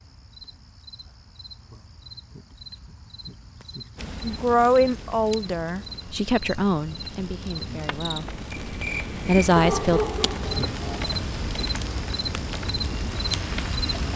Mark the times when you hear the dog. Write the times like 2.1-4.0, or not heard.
9.6-11.2.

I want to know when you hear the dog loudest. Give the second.
10 s.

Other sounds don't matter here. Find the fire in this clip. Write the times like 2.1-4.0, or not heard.
4.0-14.1.